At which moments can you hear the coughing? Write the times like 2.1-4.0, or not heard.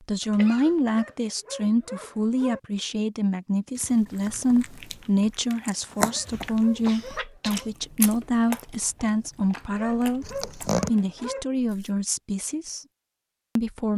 0.2-0.8, 6.4-7.7, 10.2-10.9.